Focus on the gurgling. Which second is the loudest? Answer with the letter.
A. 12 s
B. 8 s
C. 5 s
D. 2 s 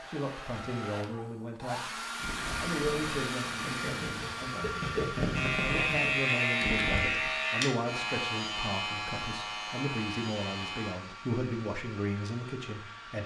C.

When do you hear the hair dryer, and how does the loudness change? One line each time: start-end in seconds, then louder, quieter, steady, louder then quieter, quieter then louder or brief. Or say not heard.
0.0-13.2 quieter.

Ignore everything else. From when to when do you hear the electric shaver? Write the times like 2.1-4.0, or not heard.
5.3-10.9.